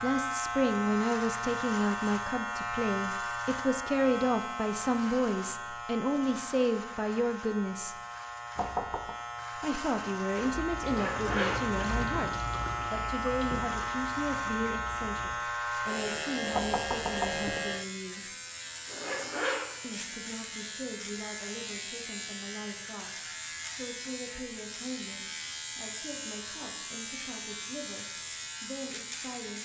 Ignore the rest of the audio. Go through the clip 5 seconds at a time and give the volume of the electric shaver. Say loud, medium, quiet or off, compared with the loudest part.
loud, medium, loud, loud, medium, medium.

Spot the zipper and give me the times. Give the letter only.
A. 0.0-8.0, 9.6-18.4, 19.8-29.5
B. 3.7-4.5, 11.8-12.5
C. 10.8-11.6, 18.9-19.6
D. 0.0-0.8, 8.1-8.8
C.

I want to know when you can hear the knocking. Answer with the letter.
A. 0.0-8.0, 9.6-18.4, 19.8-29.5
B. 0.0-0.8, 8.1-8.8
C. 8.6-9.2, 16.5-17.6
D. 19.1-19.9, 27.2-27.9
C.